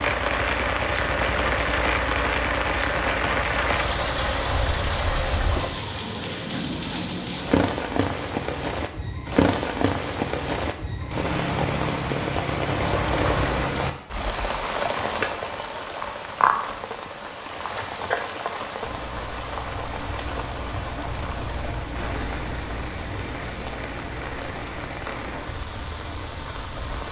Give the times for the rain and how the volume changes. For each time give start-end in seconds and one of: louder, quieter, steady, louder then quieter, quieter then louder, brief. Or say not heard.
0.0-27.0 quieter.